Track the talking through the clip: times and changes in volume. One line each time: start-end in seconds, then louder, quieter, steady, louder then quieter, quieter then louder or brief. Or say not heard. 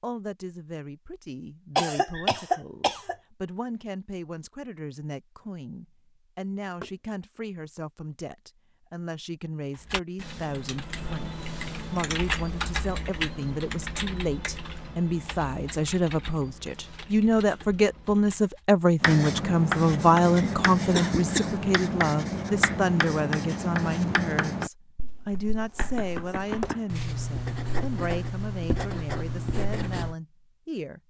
0.0-31.0 louder then quieter.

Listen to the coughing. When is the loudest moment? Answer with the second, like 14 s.
2 s.